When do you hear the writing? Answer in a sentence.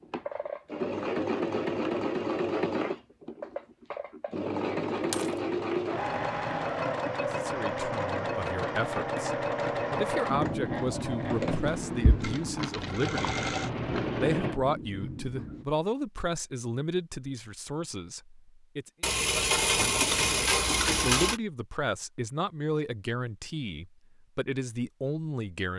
You can hear the writing from 10.2 to 15.7 s.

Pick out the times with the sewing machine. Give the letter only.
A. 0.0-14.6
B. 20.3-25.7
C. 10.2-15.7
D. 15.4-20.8
A.